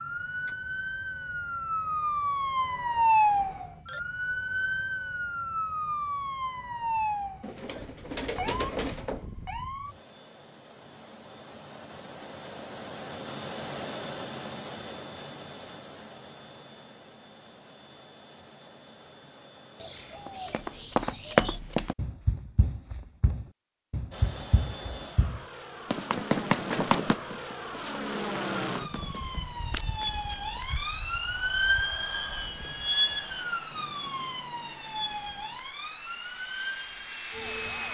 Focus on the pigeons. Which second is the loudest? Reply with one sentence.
The volume of the pigeons peaks at 9 seconds.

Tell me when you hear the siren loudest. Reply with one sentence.
The volume of the siren peaks at 3 seconds.